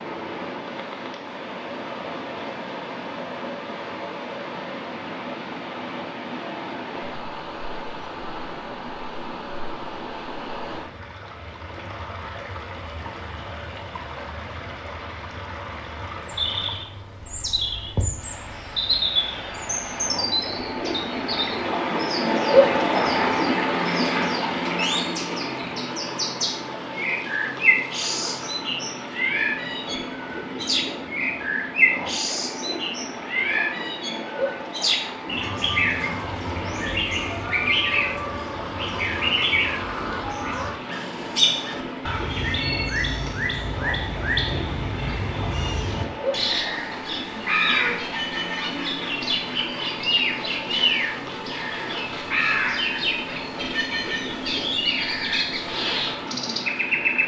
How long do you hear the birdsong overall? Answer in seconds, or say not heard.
41 s.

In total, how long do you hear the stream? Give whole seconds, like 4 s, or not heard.
57 s.